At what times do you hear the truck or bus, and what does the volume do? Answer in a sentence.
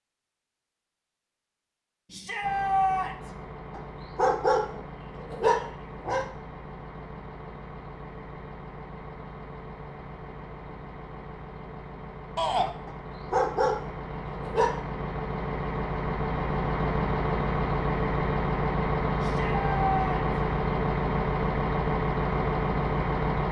The truck or bus can be heard from 2.4 to 23.4 s, getting louder.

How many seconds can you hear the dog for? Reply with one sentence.
You can hear the dog for 4 seconds altogether.